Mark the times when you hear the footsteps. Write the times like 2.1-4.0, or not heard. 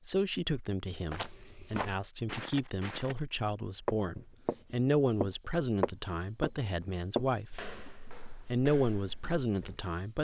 1.1-3.2, 3.9-9.8.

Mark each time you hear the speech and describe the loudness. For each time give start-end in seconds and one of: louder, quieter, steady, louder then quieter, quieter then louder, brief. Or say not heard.
0.1-7.6 louder then quieter
8.5-10.1 brief.